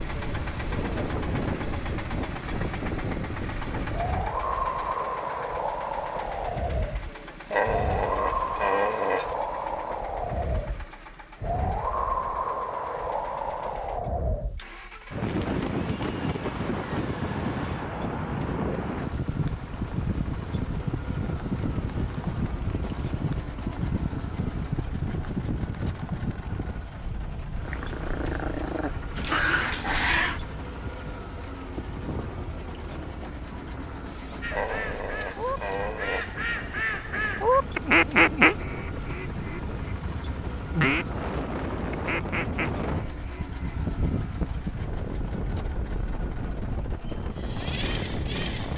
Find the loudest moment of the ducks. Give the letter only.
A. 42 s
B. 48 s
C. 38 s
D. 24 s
C.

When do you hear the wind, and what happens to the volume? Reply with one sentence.
You can hear the wind from 0.0 to 48.7 s, getting quieter then louder.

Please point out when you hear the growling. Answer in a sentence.
You can hear the growling from 7.5 to 9.3 s, from 27.6 to 30.4 s and from 34.5 to 36.4 s.